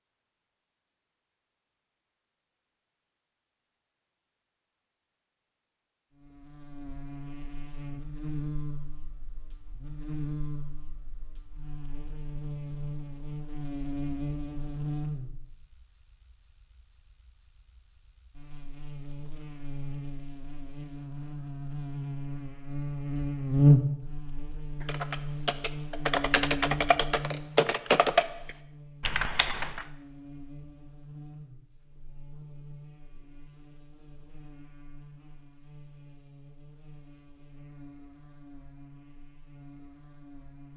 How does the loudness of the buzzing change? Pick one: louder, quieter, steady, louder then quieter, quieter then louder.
louder then quieter.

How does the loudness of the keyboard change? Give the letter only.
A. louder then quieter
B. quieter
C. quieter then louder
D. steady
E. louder
A.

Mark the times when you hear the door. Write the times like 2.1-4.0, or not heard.
not heard.